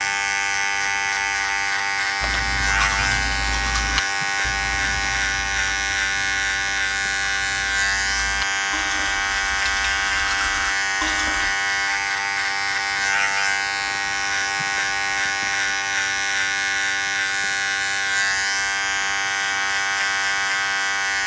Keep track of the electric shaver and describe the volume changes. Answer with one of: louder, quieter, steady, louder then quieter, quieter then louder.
steady.